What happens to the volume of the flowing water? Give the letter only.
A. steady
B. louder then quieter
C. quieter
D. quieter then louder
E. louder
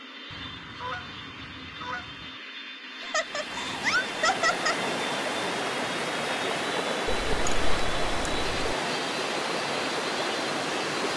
A.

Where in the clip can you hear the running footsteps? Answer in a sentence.
You can't hear the running footsteps here.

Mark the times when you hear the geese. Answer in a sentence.
You can hear the geese from 0.3 to 2.4 s and from 7.0 to 8.8 s.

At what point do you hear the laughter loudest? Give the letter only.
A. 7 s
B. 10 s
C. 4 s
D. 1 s
C.